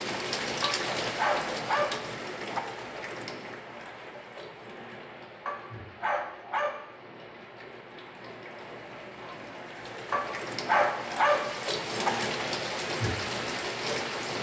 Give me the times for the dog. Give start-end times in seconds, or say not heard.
0.6-2.6, 5.5-6.8, 10.1-12.1.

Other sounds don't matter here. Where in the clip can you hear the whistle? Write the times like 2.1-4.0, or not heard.
not heard.